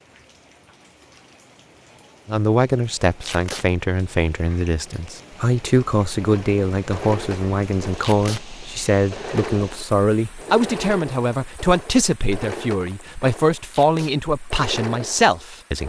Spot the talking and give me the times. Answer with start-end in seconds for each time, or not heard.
2.2-15.8.